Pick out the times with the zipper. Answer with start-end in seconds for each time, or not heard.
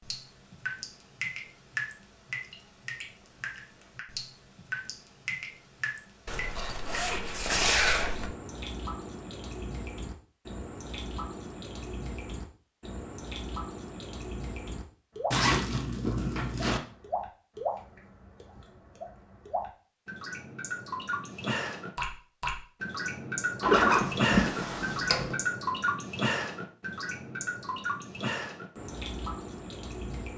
6.2-8.3, 15.3-16.8, 23.6-25.4.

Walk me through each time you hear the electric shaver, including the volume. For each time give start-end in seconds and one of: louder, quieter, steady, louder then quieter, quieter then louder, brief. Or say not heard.
not heard.